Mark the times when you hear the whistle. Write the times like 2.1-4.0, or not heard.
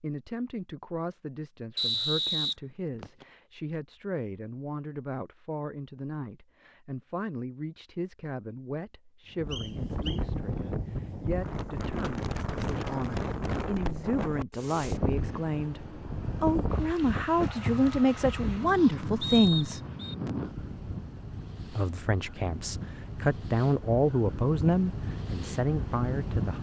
1.8-3.2, 9.5-10.2, 19.2-20.1.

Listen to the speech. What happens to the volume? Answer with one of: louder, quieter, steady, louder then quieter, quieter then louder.
louder.